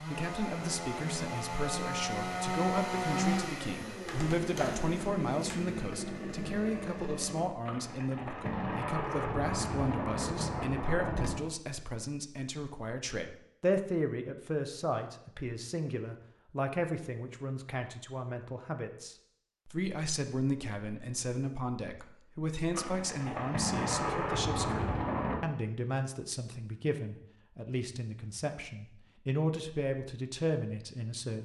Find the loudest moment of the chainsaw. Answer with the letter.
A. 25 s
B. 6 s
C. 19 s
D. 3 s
D.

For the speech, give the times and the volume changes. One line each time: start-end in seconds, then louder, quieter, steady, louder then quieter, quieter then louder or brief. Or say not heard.
0.0-31.4 steady.